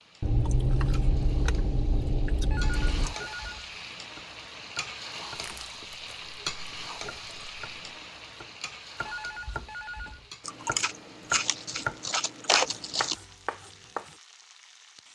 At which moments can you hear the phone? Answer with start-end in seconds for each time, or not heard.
2.5-3.8, 9.0-10.3.